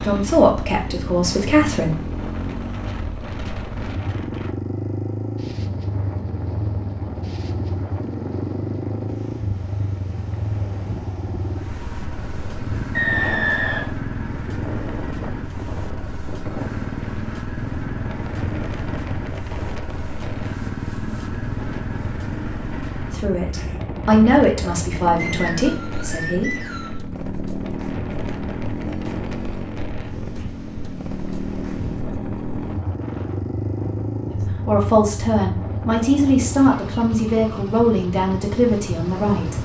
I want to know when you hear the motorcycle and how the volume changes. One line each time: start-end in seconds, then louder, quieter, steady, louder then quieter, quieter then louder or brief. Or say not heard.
0.0-39.6 steady.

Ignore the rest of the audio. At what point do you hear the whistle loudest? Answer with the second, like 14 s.
13 s.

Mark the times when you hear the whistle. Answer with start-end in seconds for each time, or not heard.
12.9-13.9, 25.1-27.0.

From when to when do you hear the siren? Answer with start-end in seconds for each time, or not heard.
not heard.